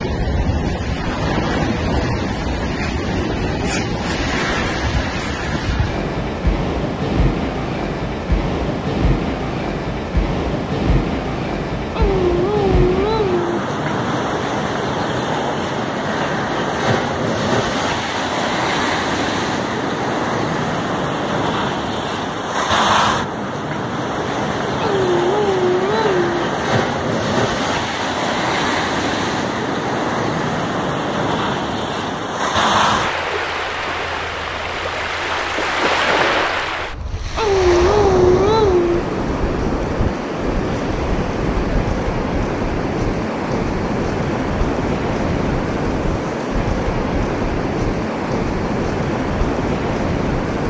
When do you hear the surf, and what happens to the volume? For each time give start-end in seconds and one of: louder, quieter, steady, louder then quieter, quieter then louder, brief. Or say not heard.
0.0-50.6 steady.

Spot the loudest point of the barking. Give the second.
38 s.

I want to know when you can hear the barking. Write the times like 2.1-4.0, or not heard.
11.9-13.6, 24.8-26.2, 37.4-39.0.